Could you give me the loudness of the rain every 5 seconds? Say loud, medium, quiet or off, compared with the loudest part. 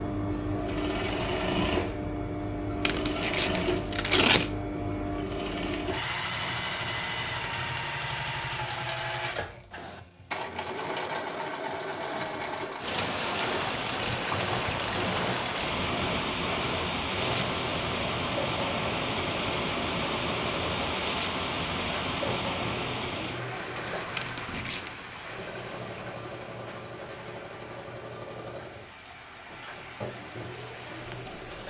off, off, loud, loud, loud, quiet, quiet.